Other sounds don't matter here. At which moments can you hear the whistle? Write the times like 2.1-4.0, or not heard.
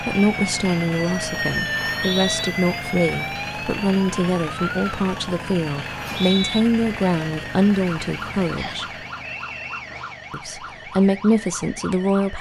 1.8-2.5, 5.8-6.7, 8.6-9.8.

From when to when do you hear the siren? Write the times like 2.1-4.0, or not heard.
0.0-12.3.